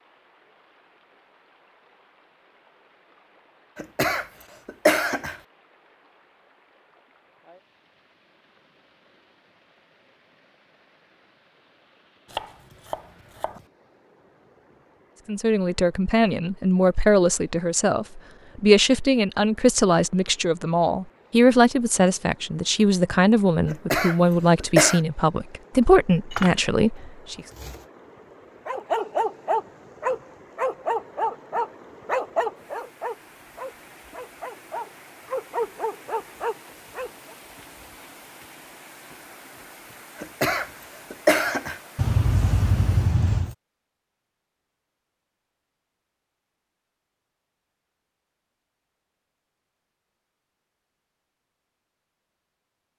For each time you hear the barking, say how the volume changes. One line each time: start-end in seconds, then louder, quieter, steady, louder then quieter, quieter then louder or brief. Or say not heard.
28.6-37.4 quieter then louder.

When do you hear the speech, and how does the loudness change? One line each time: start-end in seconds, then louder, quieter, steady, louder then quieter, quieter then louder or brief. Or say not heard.
15.2-27.4 steady.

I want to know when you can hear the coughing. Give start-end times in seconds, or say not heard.
3.8-5.3, 23.7-25.0, 40.2-41.8.